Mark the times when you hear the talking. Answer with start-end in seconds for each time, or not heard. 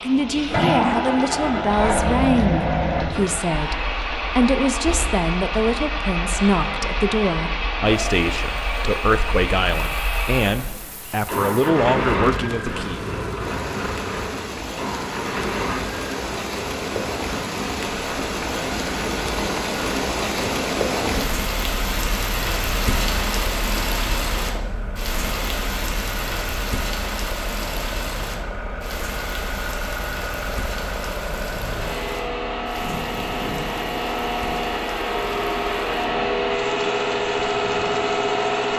0.0-13.0.